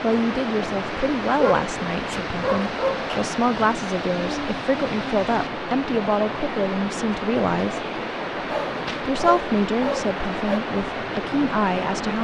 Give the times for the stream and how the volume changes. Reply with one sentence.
You can hear the stream from 0.0 to 12.1 s, at a steady volume.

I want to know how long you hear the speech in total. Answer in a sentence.
You can hear the speech for 11 seconds altogether.